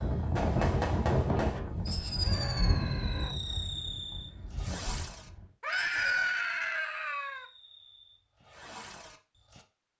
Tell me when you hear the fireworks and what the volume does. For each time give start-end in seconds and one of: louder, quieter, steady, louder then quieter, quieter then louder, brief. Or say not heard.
0.3-9.7 quieter.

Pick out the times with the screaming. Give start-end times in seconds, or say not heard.
2.2-3.4, 5.6-7.5.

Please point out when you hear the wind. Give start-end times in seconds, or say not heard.
0.0-5.5.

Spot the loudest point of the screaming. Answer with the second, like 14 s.
6 s.